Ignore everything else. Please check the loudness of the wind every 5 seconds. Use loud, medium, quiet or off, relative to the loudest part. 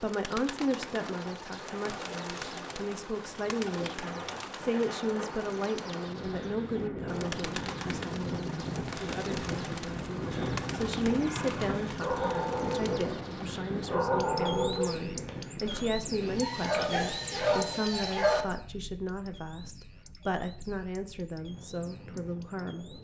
medium, loud, loud, medium, quiet.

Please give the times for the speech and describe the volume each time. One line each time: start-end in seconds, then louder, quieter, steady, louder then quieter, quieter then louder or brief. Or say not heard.
0.0-23.0 steady.